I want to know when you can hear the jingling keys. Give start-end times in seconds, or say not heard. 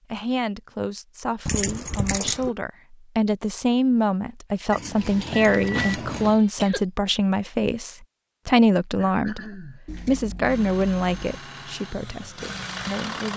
1.4-2.5, 4.7-6.4, 9.8-11.4.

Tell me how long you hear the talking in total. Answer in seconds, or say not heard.
13 s.